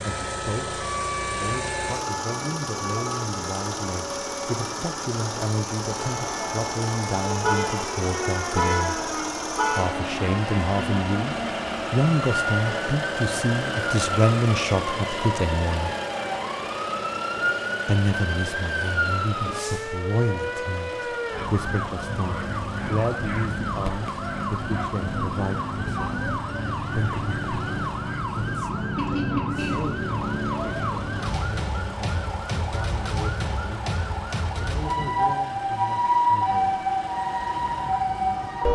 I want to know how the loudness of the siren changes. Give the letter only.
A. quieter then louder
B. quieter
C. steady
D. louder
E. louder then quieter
D.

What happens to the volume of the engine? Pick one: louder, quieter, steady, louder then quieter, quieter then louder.
quieter.